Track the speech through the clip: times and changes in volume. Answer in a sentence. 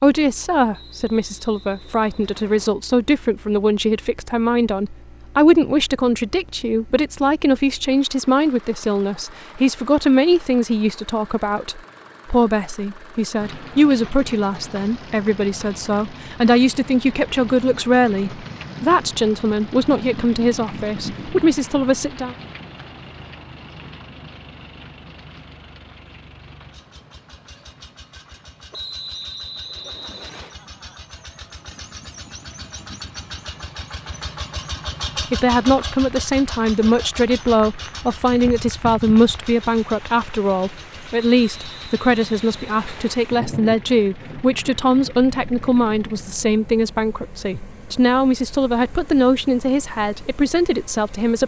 You can hear the speech from 0.0 to 22.4 s, at a steady volume; and from 35.3 to 51.4 s, at a steady volume.